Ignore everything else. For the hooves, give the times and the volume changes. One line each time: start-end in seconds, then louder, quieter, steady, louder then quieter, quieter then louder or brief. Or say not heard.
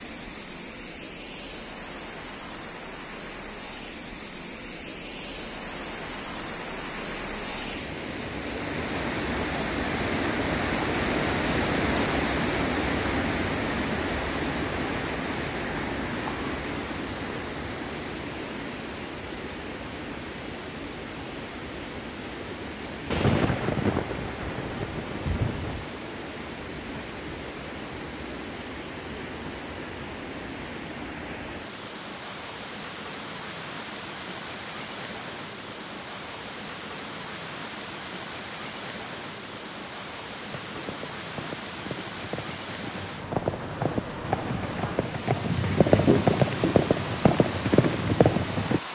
40.5-48.8 louder.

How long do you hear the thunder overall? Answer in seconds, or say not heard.
3 s.